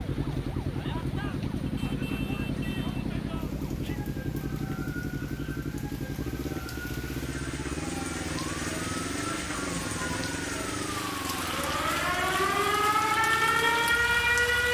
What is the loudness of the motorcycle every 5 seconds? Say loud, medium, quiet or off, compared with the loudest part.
loud, loud, medium.